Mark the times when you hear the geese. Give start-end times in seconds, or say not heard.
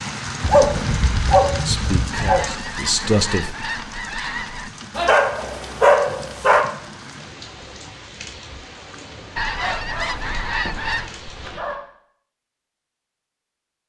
2.1-4.7, 9.3-11.2.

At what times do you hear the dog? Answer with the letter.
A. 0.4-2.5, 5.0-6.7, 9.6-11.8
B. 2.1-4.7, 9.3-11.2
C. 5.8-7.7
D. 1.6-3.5
A.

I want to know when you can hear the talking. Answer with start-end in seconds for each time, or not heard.
1.6-3.5.